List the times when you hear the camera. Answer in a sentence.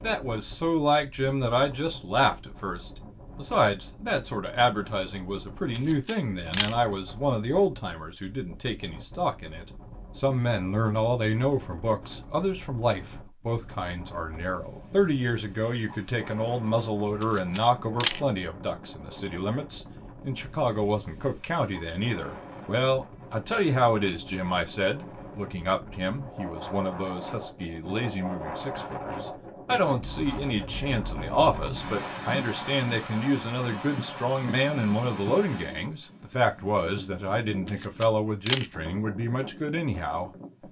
The camera can be heard from 5.8 to 6.8 s, from 17.2 to 18.2 s and from 37.6 to 38.6 s.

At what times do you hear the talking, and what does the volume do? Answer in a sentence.
You can hear the talking from 0.0 to 40.3 s, at a steady volume.